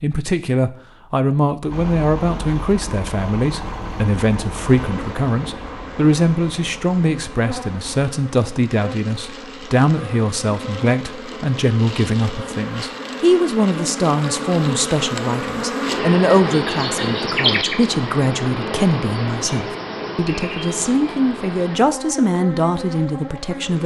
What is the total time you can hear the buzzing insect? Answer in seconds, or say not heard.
19 s.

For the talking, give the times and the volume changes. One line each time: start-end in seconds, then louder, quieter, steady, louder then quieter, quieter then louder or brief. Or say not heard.
0.0-23.8 steady.